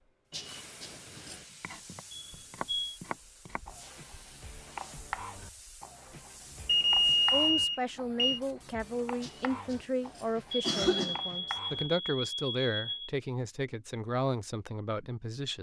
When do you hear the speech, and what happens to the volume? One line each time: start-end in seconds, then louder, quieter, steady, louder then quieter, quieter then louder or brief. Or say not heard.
7.3-15.5 steady.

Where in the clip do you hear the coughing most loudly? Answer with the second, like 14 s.
11 s.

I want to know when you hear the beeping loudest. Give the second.
7 s.